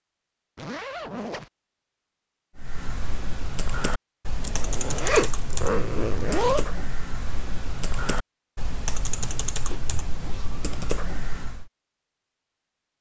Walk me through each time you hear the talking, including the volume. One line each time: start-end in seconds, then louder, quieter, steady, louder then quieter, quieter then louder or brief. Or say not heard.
not heard.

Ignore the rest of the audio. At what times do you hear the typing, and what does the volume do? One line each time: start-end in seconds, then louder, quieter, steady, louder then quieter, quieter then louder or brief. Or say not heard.
2.5-11.7 steady.